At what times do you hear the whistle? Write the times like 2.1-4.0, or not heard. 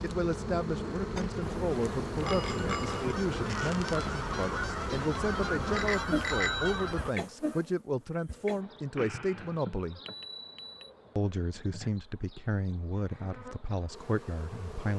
not heard.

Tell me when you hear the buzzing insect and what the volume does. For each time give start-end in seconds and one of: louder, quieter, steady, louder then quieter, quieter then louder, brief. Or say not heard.
0.0-14.9 quieter.